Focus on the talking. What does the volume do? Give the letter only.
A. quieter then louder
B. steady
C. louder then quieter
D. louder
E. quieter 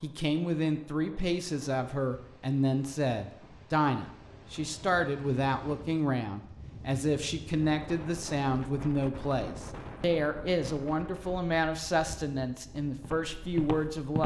B.